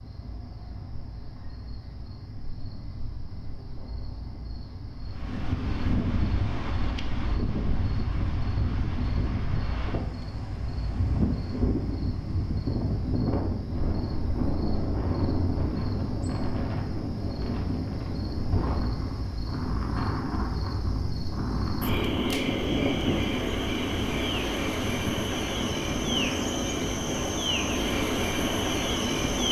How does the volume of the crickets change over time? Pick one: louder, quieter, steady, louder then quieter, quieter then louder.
louder.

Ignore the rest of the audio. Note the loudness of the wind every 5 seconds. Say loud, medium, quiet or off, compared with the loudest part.
off, loud, loud, loud, loud, loud.